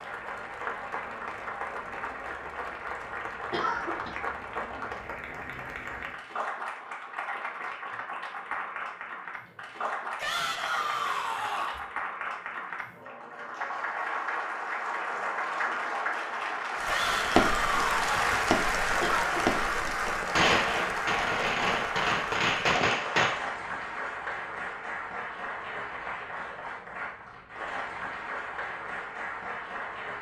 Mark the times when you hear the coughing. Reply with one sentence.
You can hear the coughing from 3.5 to 4.2 s and from 19.0 to 19.6 s.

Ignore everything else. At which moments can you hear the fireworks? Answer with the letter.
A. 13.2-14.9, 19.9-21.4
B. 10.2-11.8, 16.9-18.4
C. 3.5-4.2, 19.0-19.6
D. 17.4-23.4
D.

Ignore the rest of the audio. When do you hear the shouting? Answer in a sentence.
The shouting can be heard from 10.2 to 11.8 s and from 16.9 to 18.4 s.